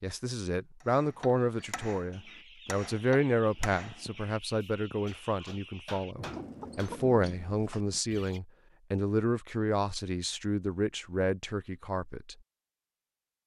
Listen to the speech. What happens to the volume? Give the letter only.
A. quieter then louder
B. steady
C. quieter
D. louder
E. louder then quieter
B.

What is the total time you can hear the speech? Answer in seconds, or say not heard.
12 s.